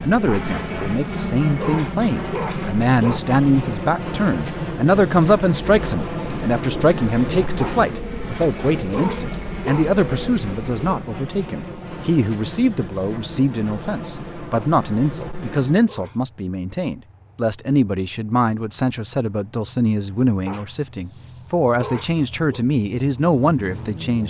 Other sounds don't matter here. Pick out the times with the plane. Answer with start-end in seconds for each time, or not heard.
0.0-24.2.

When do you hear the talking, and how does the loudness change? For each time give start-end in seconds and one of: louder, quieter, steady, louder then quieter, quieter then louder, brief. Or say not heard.
0.0-24.2 steady.